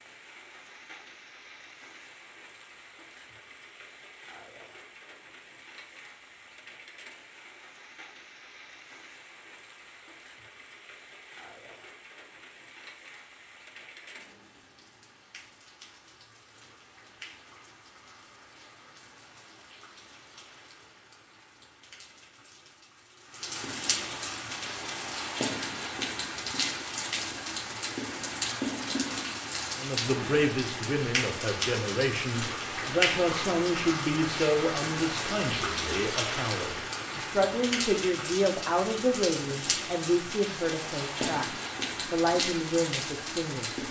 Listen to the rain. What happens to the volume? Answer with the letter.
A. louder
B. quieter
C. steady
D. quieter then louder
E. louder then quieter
A.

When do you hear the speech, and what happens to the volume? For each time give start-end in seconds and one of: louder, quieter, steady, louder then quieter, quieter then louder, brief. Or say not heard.
29.8-43.8 steady.